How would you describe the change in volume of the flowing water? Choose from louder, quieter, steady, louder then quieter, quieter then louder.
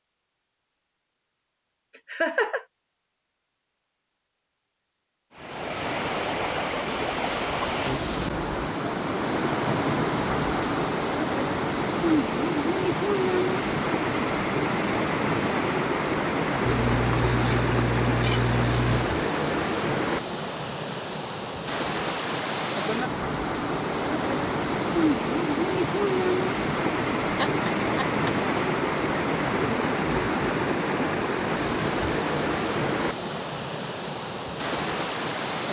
steady.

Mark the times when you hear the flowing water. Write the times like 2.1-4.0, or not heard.
5.3-35.6.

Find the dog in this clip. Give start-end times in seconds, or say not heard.
not heard.